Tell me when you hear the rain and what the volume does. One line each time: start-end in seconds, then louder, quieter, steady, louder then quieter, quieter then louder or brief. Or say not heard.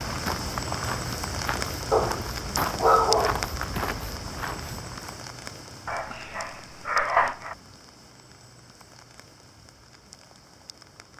0.0-11.1 quieter.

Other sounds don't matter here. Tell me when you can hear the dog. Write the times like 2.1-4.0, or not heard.
1.9-3.5, 5.8-7.5.